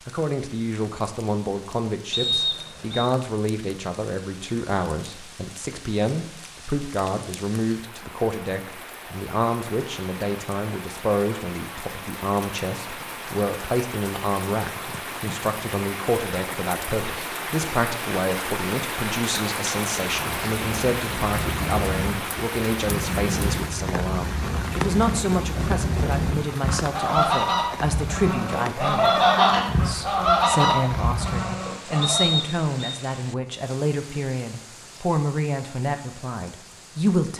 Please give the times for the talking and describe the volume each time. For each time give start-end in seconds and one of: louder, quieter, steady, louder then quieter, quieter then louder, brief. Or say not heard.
0.1-37.3 steady.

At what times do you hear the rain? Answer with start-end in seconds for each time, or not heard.
0.0-37.3.